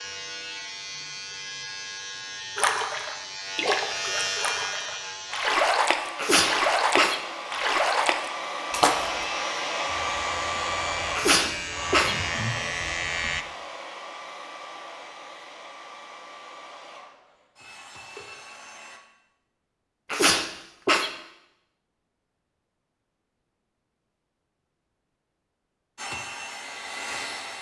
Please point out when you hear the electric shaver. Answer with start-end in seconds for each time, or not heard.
0.0-5.5, 8.8-13.4.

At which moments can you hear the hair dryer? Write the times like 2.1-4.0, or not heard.
5.2-19.0, 25.9-27.5.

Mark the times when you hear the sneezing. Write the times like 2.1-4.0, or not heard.
6.2-7.2, 11.2-12.2, 20.1-21.1.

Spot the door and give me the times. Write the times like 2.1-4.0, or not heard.
not heard.